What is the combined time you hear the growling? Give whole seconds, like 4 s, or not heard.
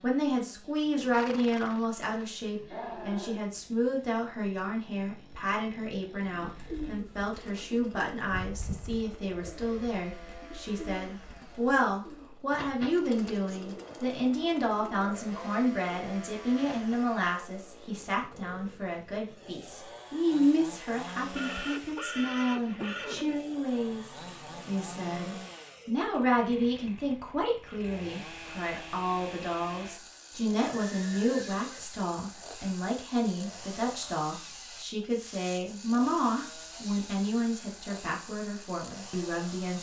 3 s.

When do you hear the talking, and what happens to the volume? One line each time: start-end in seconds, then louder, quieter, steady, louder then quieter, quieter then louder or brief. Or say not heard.
0.0-39.7 steady.